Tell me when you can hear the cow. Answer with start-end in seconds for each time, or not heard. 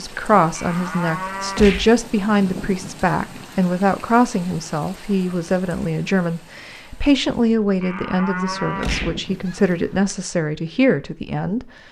0.6-1.9, 7.8-9.2.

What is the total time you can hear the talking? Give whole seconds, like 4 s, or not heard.
12 s.